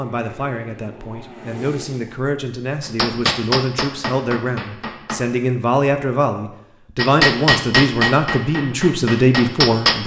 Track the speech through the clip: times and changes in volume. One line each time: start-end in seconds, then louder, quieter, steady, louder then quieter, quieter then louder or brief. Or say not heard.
0.0-10.0 louder.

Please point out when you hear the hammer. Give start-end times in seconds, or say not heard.
2.8-5.2, 7.0-10.0.